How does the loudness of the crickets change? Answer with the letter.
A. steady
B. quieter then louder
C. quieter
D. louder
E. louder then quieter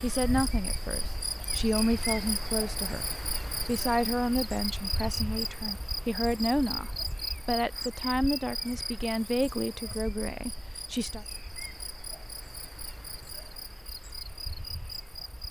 C.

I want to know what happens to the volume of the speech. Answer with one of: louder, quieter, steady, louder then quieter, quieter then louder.
steady.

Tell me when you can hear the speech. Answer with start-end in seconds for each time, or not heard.
0.0-3.0, 3.6-11.2.